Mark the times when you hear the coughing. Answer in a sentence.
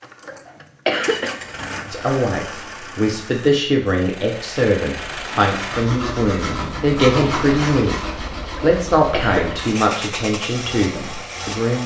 The coughing can be heard from 0.2 to 1.4 s and from 8.6 to 9.6 s.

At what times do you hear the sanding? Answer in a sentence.
The sanding can be heard from 5.0 to 9.8 s.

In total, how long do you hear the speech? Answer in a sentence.
You can hear the speech for 10 seconds altogether.